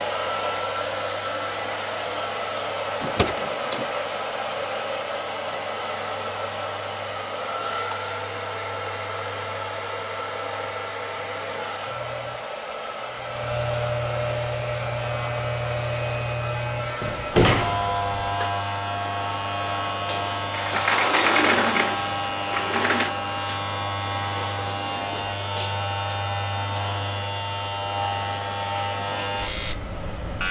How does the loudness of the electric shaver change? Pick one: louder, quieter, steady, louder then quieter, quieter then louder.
louder.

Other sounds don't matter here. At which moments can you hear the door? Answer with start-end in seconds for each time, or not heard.
3.0-3.9, 17.0-18.5, 20.5-23.1.